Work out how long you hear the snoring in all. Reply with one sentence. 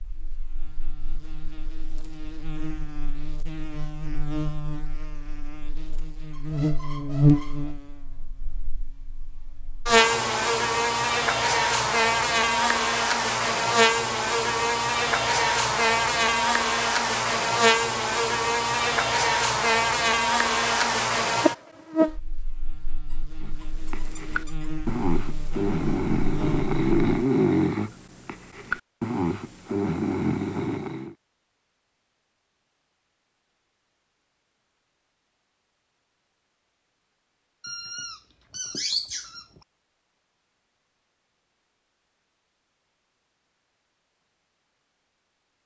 The snoring can be heard for 8 seconds in total.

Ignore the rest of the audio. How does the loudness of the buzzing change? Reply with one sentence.
The loudness of the buzzing goes up, then down.